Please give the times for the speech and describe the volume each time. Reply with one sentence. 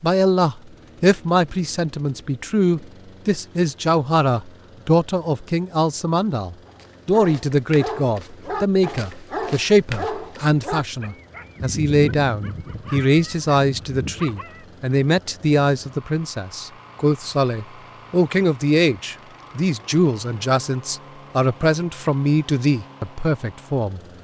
You can hear the speech from 0.0 to 24.0 s, at a steady volume.